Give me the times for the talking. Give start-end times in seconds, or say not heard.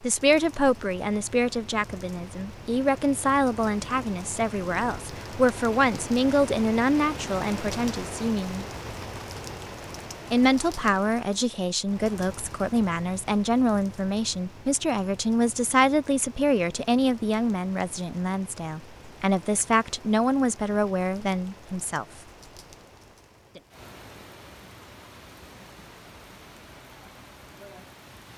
0.0-8.7, 10.3-22.1.